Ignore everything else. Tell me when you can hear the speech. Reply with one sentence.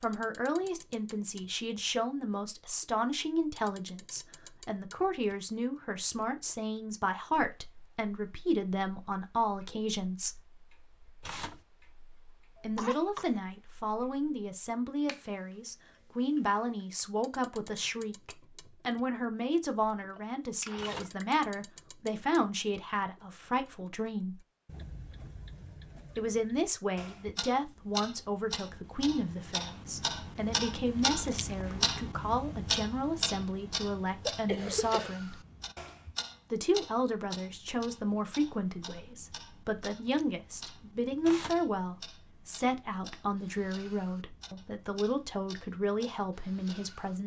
The speech can be heard from 0.0 to 10.3 s, from 12.6 to 24.4 s, from 26.1 to 35.4 s and from 36.5 to 47.2 s.